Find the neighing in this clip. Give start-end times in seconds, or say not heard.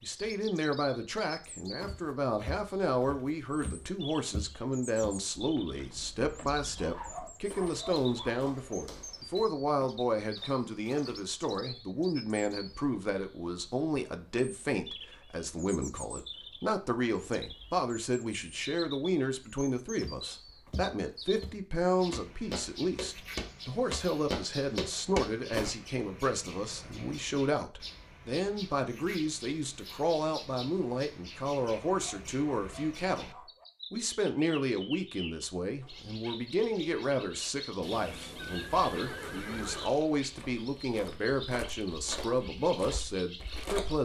37.8-39.9.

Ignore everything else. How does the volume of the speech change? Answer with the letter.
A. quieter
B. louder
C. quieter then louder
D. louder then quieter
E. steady
E.